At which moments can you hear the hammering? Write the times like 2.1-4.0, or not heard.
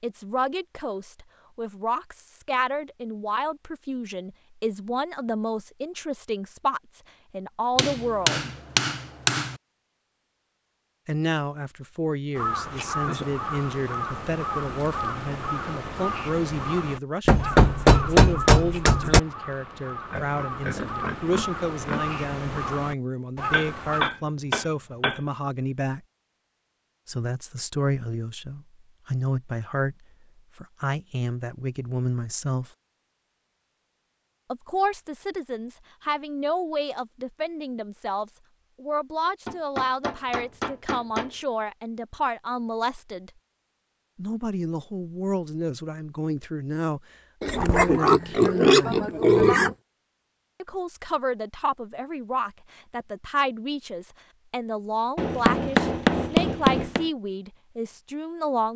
7.8-9.6, 17.2-19.2, 23.5-25.2, 39.5-41.5, 55.1-57.1.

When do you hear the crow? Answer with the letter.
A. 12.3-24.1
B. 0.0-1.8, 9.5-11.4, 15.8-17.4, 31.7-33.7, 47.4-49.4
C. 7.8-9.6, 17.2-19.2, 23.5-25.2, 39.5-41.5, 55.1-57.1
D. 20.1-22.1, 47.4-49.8
A.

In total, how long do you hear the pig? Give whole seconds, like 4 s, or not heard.
4 s.